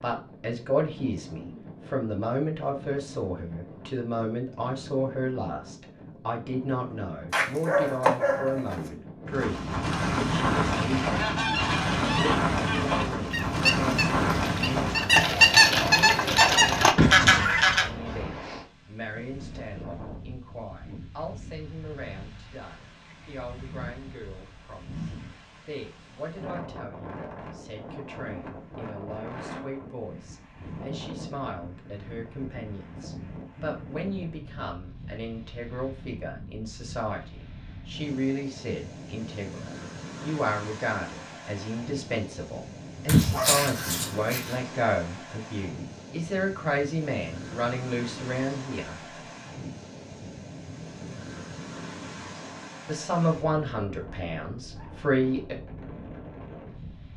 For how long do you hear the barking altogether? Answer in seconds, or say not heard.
3 s.